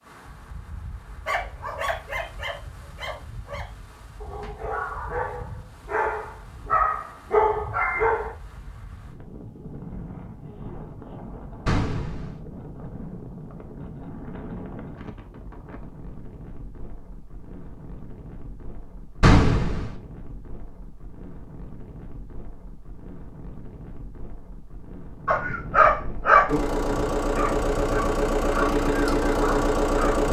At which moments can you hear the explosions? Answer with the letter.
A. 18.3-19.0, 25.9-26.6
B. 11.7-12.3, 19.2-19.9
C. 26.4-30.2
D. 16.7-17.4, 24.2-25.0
B.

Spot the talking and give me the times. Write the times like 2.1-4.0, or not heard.
not heard.